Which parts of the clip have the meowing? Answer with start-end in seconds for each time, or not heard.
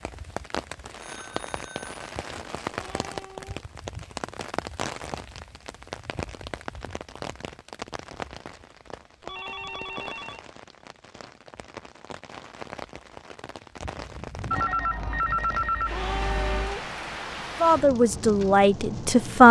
2.7-3.5, 9.2-10.0, 15.8-16.9.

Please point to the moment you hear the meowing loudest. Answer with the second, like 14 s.
16 s.